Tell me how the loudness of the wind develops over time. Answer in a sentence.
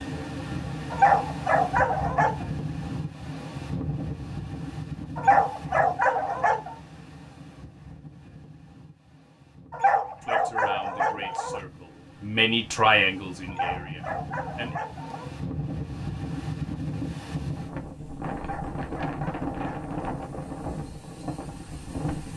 The loudness of the wind goes down, then up.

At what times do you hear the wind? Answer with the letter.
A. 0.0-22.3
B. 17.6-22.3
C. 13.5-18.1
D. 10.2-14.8
A.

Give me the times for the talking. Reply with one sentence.
You can hear the talking from 10.2 to 14.8 s.